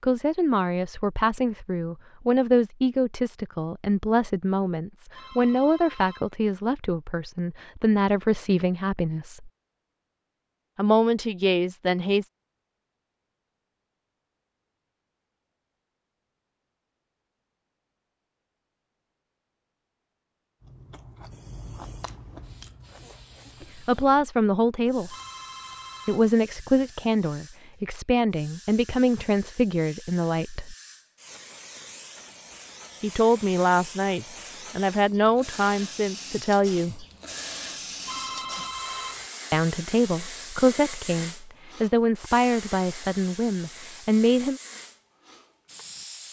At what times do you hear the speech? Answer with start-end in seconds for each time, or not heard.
0.0-9.5, 10.8-12.3, 23.8-25.1, 26.1-30.8, 33.0-37.0, 39.5-44.6.